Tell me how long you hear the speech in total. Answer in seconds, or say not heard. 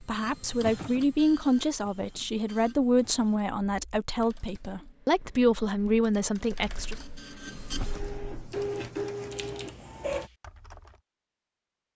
7 s.